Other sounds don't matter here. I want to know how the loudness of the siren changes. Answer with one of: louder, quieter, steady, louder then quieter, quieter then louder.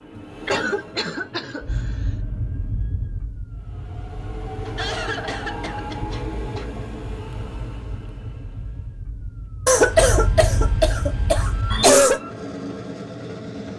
quieter then louder.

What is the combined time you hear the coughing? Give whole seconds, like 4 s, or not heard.
6 s.